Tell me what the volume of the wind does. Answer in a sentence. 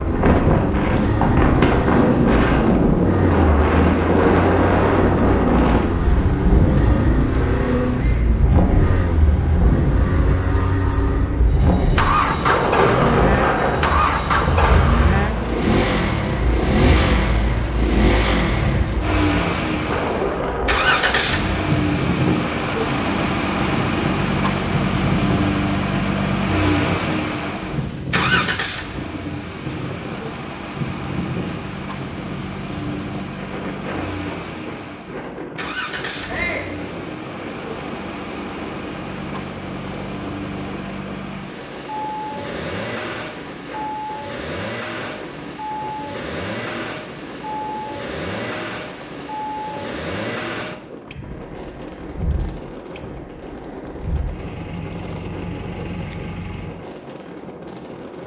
The volume of the wind goes down.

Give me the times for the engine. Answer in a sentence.
The engine can be heard from 0.0 to 56.9 s.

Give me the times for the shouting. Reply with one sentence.
The shouting can be heard from 7.9 to 8.3 s and from 36.2 to 36.8 s.